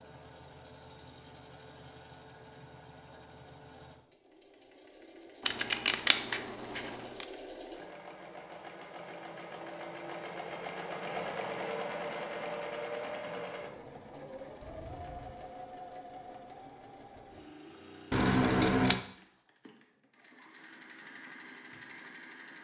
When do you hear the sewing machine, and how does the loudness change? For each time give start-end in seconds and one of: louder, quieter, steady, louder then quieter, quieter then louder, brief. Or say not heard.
0.0-22.6 louder then quieter.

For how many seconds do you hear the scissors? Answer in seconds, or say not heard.
3 s.